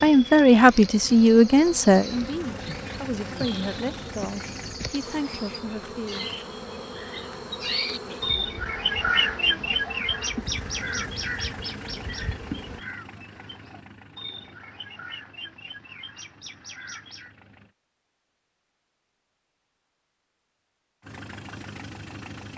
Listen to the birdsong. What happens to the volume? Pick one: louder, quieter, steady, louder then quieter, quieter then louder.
louder then quieter.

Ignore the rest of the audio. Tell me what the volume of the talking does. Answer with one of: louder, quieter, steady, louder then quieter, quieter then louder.
quieter.